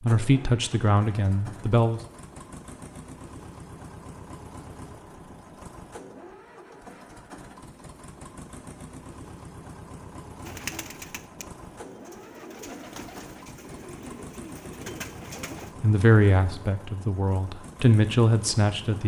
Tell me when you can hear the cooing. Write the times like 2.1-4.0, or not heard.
10.4-15.8.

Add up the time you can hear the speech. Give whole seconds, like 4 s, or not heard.
5 s.